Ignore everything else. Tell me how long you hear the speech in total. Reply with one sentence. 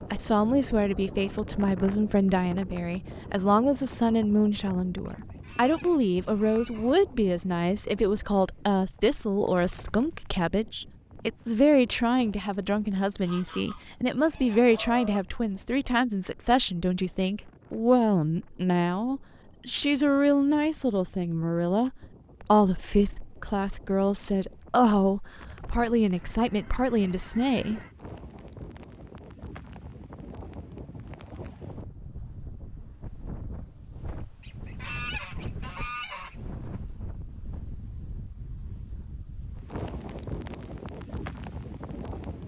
The speech can be heard for 28 seconds in total.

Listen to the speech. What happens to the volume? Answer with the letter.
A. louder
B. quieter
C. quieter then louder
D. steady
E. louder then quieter
D.